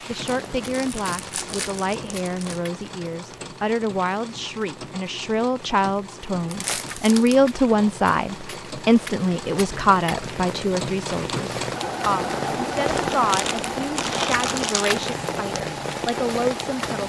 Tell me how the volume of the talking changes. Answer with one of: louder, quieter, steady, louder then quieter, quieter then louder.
louder then quieter.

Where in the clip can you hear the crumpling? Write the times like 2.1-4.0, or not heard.
0.2-2.6, 6.5-7.4, 12.8-15.1.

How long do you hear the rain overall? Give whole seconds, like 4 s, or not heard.
17 s.